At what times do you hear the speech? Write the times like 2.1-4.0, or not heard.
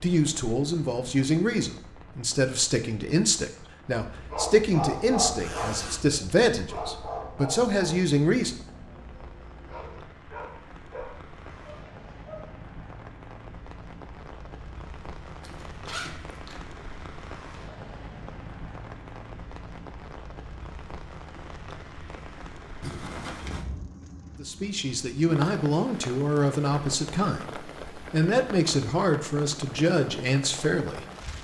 0.0-8.6, 24.4-31.1.